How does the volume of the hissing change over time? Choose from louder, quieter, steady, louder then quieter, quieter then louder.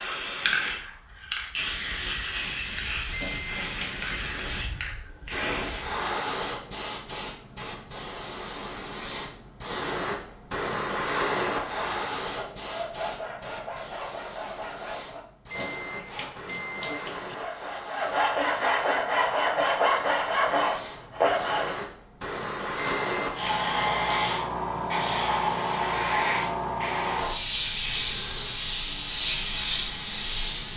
quieter then louder.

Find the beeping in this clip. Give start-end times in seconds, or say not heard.
3.1-4.2, 15.5-17.4, 22.8-24.4.